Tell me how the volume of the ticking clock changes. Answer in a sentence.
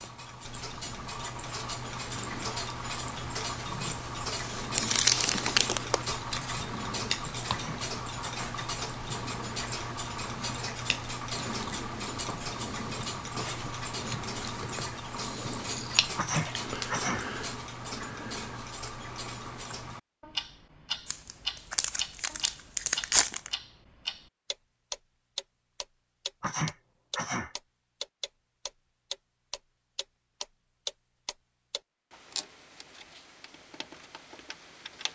The volume of the ticking clock goes down.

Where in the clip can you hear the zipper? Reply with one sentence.
The zipper can't be heard in this clip.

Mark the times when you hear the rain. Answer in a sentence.
You can't hear the rain here.